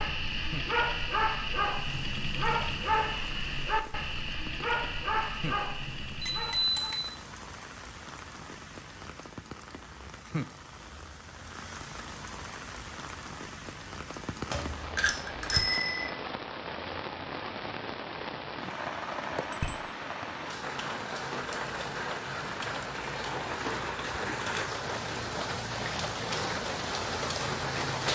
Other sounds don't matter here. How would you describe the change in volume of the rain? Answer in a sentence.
The volume of the rain goes up.